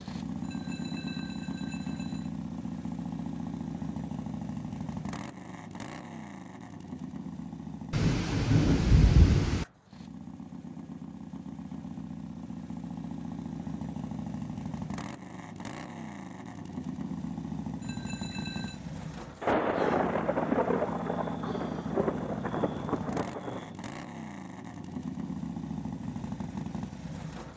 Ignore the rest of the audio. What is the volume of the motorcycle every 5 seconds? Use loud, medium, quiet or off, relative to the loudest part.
loud, medium, loud, loud, loud, loud.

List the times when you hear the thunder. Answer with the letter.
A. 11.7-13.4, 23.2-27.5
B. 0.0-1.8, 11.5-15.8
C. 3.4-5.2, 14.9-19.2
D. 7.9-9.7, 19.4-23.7
D.